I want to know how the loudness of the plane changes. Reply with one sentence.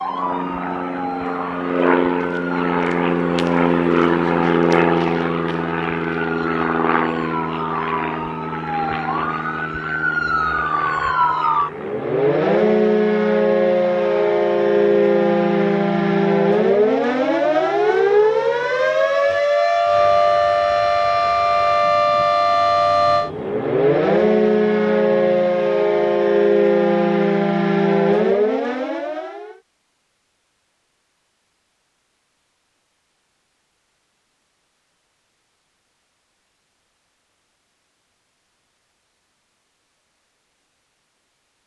The loudness of the plane goes down.